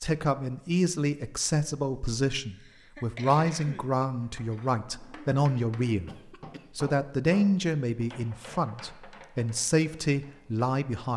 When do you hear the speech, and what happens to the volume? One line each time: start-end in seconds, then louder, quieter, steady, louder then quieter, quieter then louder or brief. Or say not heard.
0.0-11.1 steady.